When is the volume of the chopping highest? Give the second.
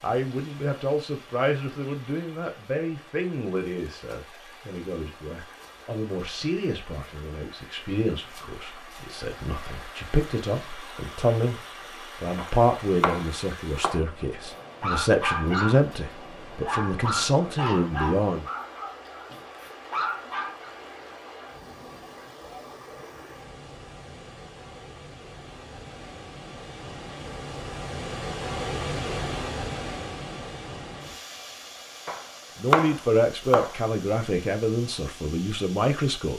33 s.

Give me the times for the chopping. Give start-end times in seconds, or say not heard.
12.3-14.1, 32.0-33.8.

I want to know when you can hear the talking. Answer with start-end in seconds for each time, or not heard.
0.0-11.6, 12.2-18.4, 32.5-36.3.